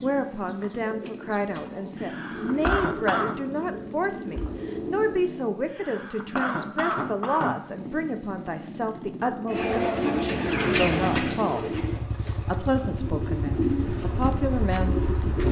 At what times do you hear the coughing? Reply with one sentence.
You can hear the coughing from 2.0 to 3.4 s, from 5.7 to 7.6 s and from 10.4 to 10.9 s.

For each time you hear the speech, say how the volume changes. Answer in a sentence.
You can hear the speech from 0.0 to 15.4 s, at a steady volume.